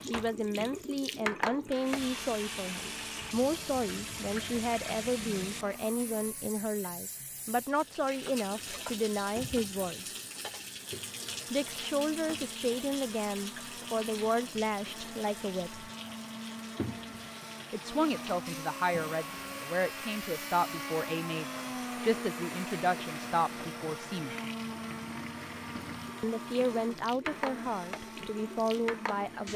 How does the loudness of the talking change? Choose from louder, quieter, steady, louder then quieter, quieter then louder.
steady.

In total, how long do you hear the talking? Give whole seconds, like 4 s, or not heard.
24 s.